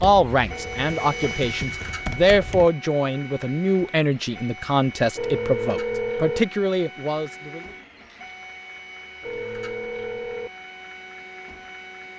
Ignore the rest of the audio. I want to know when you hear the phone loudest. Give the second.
6 s.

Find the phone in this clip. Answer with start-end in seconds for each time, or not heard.
0.5-1.4, 5.2-6.4, 9.2-10.5.